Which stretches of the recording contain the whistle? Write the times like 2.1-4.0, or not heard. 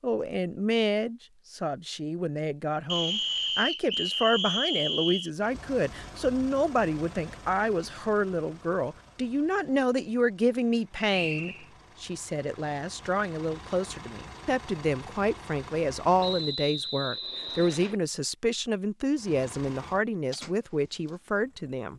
2.9-5.3, 11.1-11.7, 16.2-17.9.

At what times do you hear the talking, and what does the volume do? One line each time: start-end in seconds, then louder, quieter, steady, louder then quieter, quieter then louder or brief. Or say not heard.
0.0-21.9 steady.